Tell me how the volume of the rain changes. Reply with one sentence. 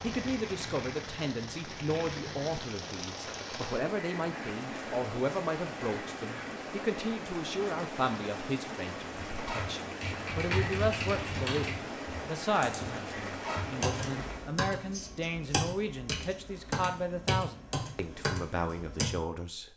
The volume of the rain stays about the same.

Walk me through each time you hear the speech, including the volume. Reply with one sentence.
The speech can be heard from 0.0 to 19.7 s, at a steady volume.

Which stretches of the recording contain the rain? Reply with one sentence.
You can hear the rain from 0.0 to 14.6 s.